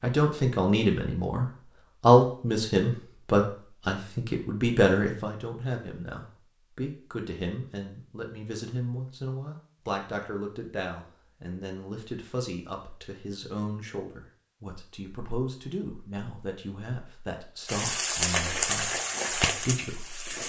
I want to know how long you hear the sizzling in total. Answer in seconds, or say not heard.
3 s.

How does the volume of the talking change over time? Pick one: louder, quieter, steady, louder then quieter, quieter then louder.
quieter.